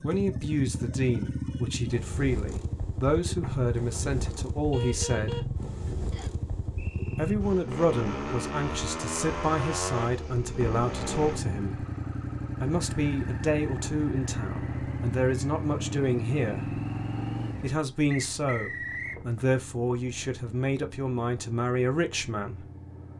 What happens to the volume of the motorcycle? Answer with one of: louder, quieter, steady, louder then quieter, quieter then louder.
quieter.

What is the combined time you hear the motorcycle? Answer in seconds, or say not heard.
23 s.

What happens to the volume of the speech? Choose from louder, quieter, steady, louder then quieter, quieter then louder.
steady.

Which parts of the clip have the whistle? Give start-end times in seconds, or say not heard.
6.1-7.3, 18.1-19.2.